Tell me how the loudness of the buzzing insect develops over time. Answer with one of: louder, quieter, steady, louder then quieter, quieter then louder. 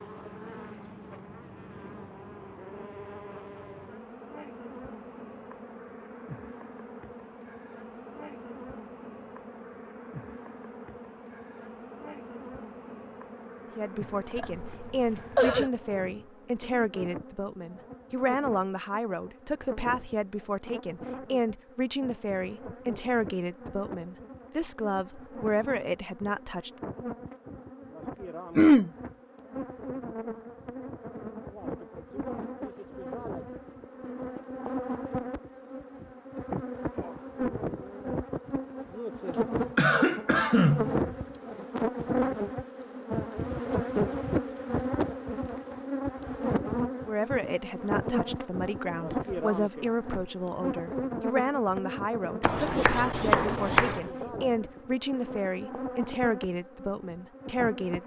louder.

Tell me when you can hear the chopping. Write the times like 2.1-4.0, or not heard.
52.4-54.1.